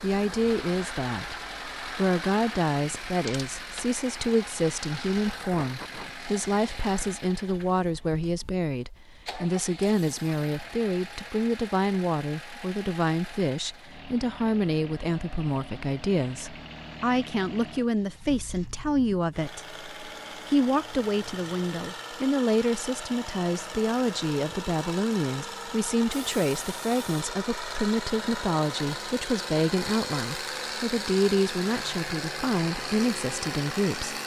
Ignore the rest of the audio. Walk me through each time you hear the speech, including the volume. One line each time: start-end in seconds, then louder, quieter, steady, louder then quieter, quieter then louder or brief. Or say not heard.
0.0-34.1 steady.